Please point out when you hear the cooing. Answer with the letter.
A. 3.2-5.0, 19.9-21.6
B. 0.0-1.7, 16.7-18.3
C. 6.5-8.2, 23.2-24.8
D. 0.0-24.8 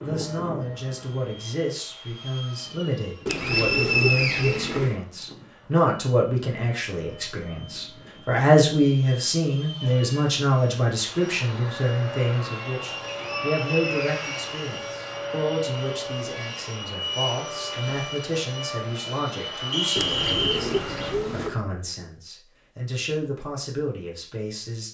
A.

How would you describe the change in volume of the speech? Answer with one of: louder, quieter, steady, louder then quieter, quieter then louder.
louder then quieter.